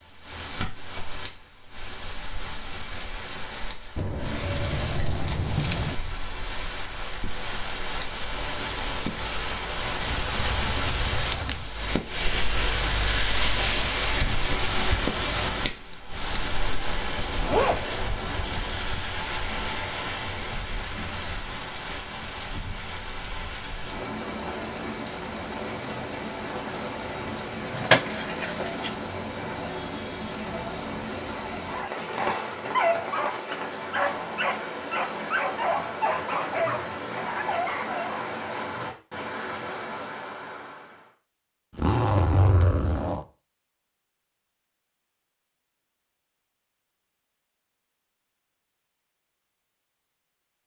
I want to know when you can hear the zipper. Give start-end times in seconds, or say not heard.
10.1-11.7, 17.4-17.9, 41.8-43.2.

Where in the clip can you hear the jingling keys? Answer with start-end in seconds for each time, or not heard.
4.0-6.0, 27.7-28.9.